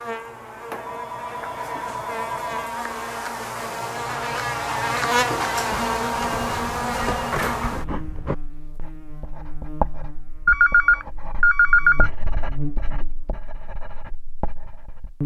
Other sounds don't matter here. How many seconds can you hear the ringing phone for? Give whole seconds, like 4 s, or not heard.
6 s.